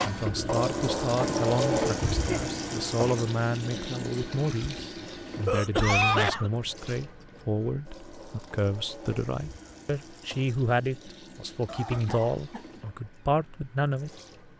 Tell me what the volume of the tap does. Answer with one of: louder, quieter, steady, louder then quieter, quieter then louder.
quieter.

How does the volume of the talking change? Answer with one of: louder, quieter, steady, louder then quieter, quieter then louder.
steady.